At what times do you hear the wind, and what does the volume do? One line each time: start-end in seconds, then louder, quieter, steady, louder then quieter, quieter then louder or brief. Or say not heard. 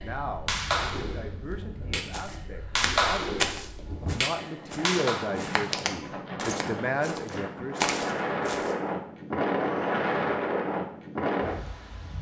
0.0-12.1 louder.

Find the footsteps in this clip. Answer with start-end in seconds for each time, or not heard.
2.1-8.8.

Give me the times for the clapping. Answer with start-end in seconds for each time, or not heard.
0.0-5.2.